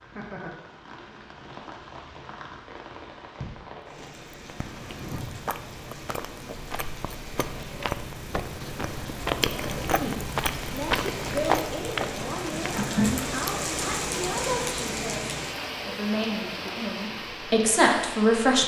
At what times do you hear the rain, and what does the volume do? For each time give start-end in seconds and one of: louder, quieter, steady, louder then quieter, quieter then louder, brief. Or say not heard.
0.0-18.6 louder.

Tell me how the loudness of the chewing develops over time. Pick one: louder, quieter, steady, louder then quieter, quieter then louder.
louder.